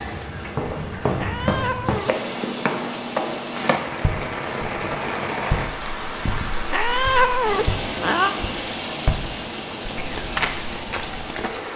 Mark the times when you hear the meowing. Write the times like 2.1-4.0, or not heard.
1.1-2.1, 6.7-8.3.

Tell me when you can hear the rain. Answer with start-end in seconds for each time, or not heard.
0.0-11.7.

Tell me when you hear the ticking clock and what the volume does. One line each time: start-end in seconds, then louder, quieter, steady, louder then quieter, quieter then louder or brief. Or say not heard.
not heard.